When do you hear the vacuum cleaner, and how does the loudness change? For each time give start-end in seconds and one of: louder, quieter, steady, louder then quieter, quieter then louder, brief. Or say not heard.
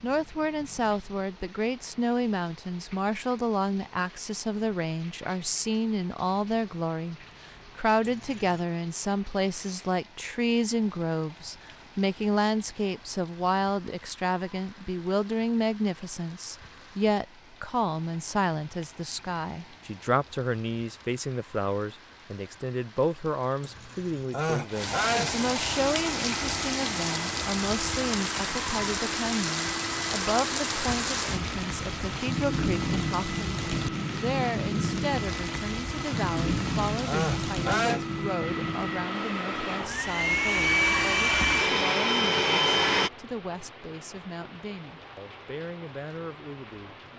25.7-43.1 louder.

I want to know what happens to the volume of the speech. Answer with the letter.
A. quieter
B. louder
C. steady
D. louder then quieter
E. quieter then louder
A.